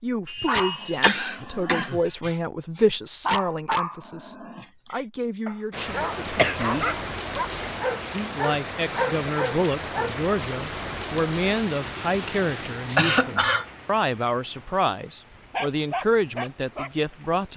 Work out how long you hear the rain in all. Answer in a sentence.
The rain can be heard for 12 seconds in total.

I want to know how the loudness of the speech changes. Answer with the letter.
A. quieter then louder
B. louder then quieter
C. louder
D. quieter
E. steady
E.